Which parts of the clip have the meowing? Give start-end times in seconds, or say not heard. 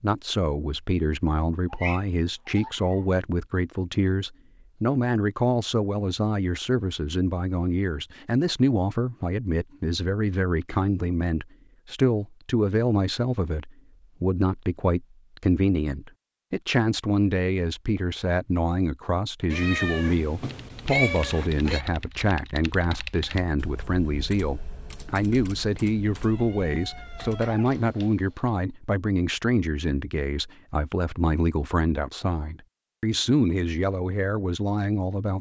1.7-3.0, 19.5-21.9, 26.1-27.8.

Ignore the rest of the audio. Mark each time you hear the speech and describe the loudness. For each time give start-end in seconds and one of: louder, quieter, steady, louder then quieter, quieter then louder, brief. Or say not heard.
0.0-35.3 steady.